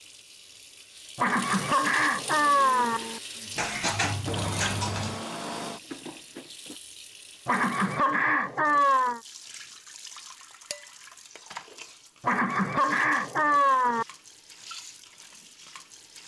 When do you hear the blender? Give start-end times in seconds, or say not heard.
2.4-6.8.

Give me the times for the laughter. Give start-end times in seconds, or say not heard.
1.1-3.0, 7.5-9.2, 12.2-14.1.